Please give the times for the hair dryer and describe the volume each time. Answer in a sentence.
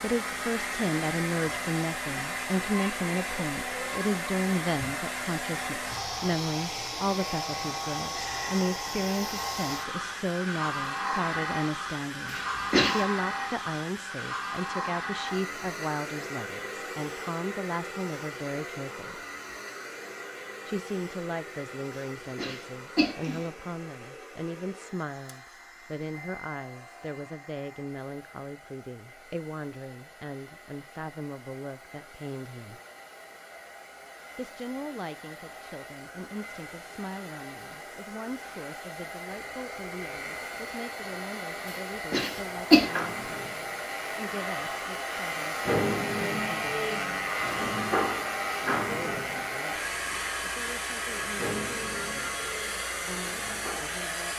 You can hear the hair dryer from 0.0 to 54.3 s, getting quieter then louder.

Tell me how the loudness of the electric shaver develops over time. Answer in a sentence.
The volume of the electric shaver goes up, then down.